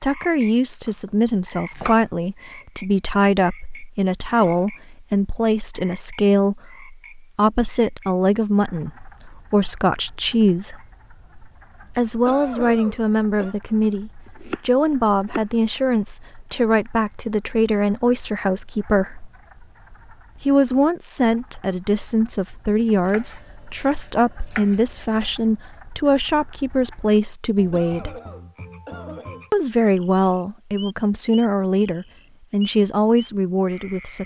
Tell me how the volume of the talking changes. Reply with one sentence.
The volume of the talking stays about the same.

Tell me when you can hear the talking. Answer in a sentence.
You can hear the talking from 0.0 to 10.8 s, from 11.9 to 19.3 s, from 20.4 to 28.1 s and from 29.5 to 34.2 s.